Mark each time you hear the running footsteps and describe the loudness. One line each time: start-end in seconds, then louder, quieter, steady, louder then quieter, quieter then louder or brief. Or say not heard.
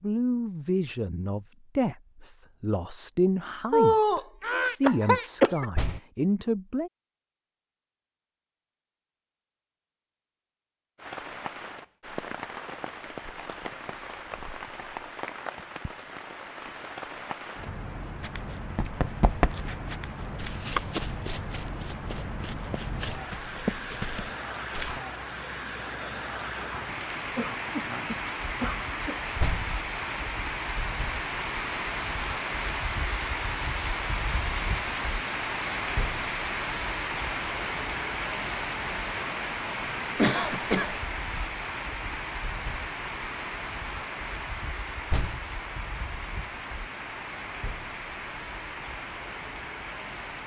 18.2-25.0 quieter then louder.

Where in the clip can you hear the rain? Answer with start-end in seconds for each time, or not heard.
10.9-50.4.